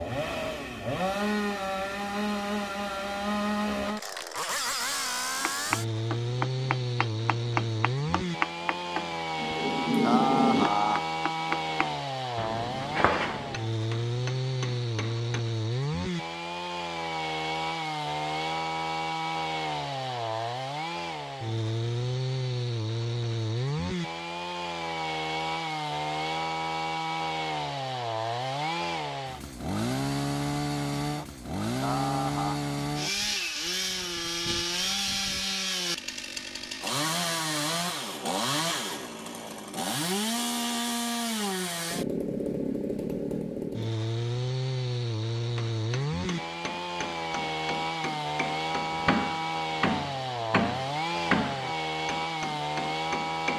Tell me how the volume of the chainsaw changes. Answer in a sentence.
The volume of the chainsaw stays about the same.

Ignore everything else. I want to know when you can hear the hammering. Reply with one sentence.
You can hear the hammering from 5.4 to 15.4 s and from 45.5 to 53.5 s.